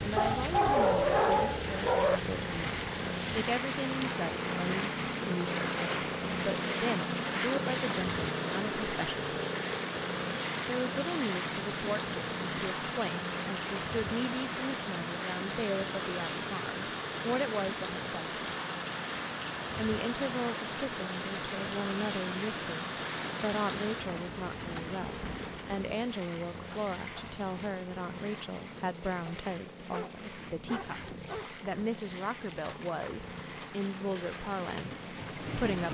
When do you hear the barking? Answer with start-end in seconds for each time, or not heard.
0.1-2.2, 29.2-31.5.